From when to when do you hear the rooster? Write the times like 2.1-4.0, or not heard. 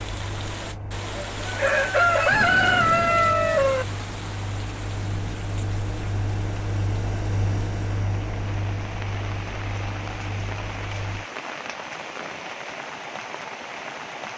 1.1-3.9.